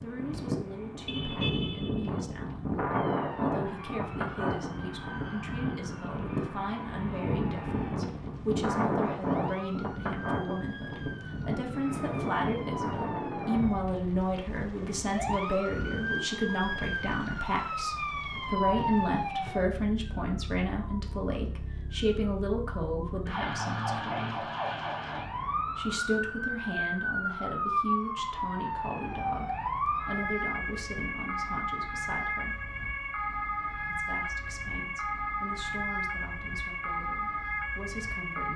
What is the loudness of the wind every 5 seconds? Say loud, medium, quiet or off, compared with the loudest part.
loud, loud, loud, quiet, off, off, off, off.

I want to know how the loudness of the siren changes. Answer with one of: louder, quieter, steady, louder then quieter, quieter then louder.
louder.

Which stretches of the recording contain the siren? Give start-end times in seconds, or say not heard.
2.9-38.5.